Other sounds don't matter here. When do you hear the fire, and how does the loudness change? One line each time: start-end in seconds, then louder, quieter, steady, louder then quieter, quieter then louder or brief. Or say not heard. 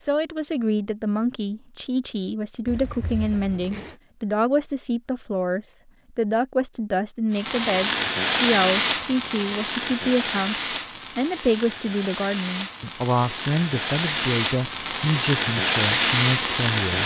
7.3-17.0 quieter then louder.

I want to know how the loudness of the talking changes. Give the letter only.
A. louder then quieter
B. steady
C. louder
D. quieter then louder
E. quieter
B.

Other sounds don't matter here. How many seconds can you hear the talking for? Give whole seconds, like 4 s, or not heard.
17 s.